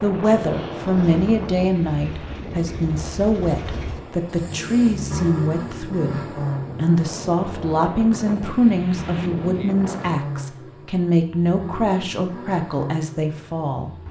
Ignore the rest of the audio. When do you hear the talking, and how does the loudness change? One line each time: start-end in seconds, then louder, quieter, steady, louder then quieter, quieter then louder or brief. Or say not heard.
0.0-13.9 steady.